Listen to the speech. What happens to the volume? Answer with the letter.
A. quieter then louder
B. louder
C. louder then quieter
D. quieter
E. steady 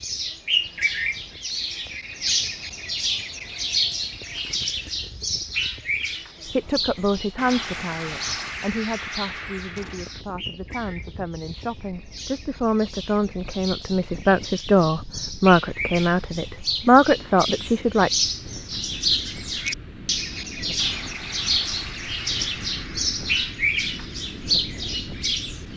A.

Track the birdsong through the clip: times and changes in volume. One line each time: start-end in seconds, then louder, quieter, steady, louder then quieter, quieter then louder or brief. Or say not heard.
0.0-25.7 quieter then louder.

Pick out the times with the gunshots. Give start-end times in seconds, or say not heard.
7.3-10.2, 20.8-23.4.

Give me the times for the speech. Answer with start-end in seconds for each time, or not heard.
6.5-18.1.